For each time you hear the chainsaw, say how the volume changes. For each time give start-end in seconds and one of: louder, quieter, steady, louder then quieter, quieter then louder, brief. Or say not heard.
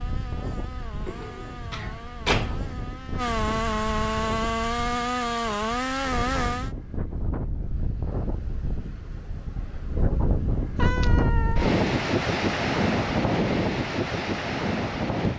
0.0-6.8 louder.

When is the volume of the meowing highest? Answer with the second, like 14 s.
11 s.